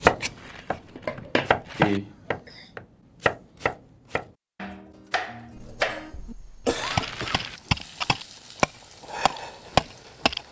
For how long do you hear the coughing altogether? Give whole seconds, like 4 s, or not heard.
3 s.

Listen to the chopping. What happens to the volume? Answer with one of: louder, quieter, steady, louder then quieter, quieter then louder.
quieter then louder.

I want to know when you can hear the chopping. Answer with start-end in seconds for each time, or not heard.
0.0-10.4.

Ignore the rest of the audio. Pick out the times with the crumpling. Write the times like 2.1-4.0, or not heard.
0.3-2.0, 6.8-7.6.